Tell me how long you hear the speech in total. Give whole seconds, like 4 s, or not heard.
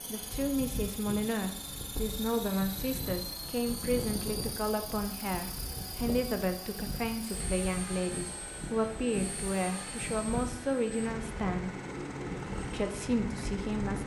13 s.